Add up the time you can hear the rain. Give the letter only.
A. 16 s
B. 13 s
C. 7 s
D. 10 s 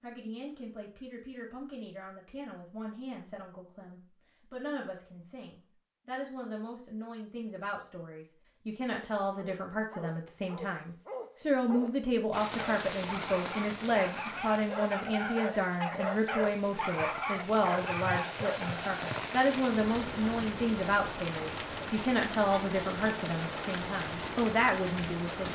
B.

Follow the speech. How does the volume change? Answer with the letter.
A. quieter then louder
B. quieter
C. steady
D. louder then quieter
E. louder
E.